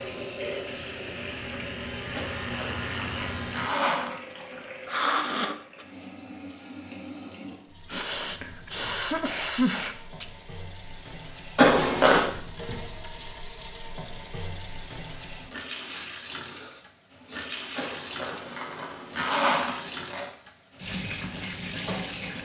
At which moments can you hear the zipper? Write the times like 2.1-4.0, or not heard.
2.1-4.1, 11.6-12.3, 17.8-20.3.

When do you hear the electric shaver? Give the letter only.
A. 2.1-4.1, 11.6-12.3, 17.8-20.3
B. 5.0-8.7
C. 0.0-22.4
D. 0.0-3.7
D.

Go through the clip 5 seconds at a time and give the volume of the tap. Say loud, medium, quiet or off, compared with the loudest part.
loud, medium, medium, loud, loud.